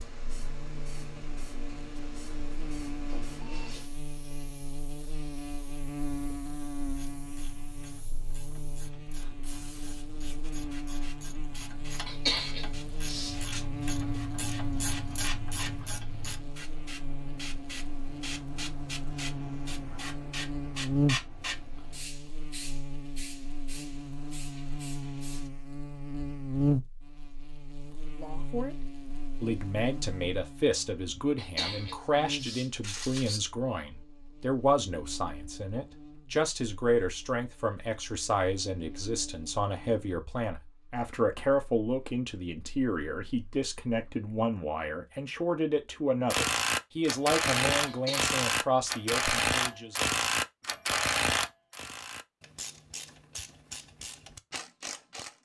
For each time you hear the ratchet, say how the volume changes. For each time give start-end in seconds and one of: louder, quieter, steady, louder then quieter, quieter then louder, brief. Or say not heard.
7.0-16.4 louder
46.3-55.4 quieter.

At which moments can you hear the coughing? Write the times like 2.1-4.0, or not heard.
12.1-13.7, 31.4-33.4, 47.9-48.3.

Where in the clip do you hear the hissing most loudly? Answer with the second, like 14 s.
21 s.